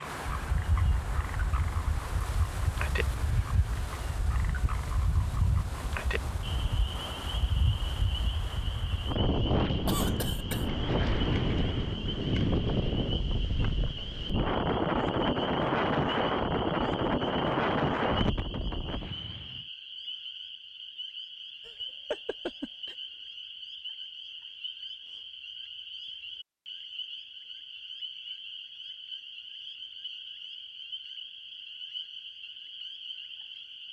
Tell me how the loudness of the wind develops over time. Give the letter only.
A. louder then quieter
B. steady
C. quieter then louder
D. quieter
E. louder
E.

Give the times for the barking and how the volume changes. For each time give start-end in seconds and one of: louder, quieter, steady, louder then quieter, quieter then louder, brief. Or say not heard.
not heard.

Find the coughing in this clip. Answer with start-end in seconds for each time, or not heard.
9.8-10.7, 21.6-22.9.